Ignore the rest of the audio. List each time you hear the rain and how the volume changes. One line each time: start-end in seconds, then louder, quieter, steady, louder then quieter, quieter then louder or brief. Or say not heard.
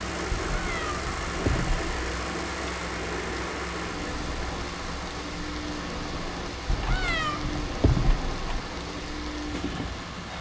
0.0-10.3 steady.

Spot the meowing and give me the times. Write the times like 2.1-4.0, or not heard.
0.3-1.9, 6.7-8.6.